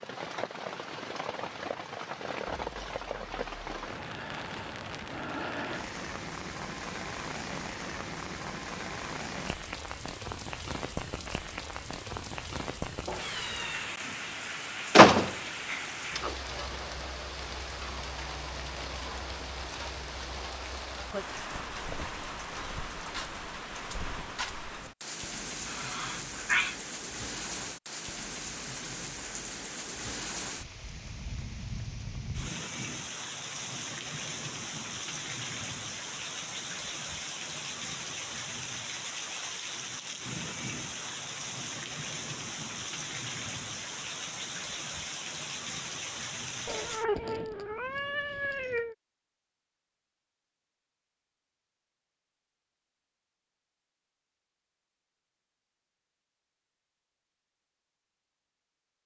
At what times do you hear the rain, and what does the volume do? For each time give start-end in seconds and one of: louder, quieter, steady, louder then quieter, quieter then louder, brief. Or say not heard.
0.0-47.0 steady.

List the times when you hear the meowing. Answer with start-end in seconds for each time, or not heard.
13.1-14.0, 25.6-26.8, 46.6-49.0.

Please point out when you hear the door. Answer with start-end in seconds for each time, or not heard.
14.9-16.3.